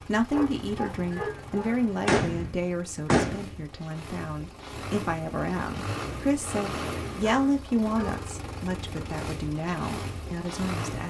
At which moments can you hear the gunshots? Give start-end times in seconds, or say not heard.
1.1-3.5.